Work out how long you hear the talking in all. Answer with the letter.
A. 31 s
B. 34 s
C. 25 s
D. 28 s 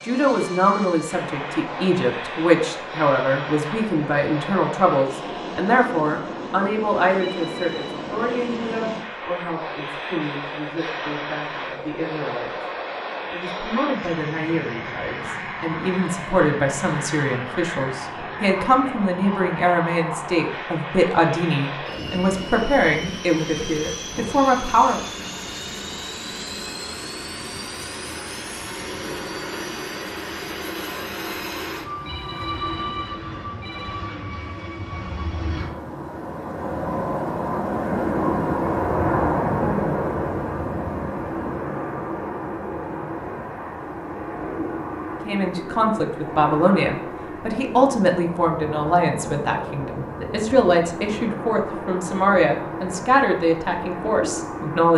B.